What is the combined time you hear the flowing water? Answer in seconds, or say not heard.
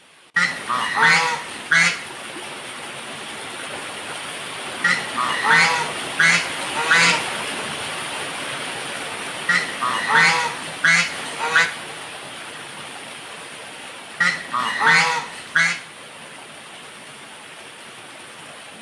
19 s.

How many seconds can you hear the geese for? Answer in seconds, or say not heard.
8 s.